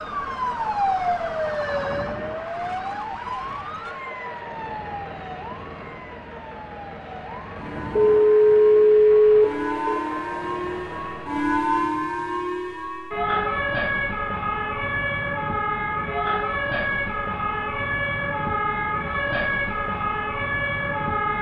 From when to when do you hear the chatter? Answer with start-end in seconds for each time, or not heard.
not heard.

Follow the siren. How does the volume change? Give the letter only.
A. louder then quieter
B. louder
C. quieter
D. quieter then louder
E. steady
D.